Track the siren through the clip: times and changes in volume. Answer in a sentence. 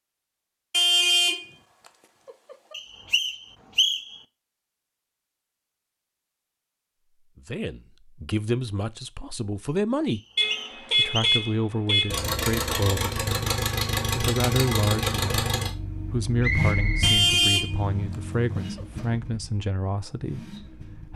You can't hear the siren here.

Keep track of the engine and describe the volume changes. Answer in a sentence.
The loudness of the engine goes down.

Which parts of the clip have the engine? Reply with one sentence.
The engine can be heard from 12.1 to 21.1 s.